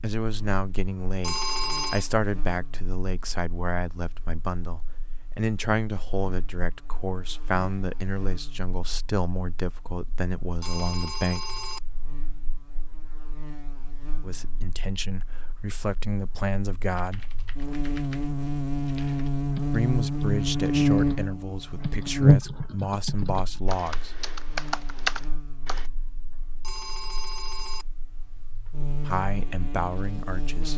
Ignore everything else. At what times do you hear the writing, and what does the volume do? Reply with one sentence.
The writing can't be heard in this clip.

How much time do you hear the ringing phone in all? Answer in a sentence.
The ringing phone can be heard for 3 seconds in total.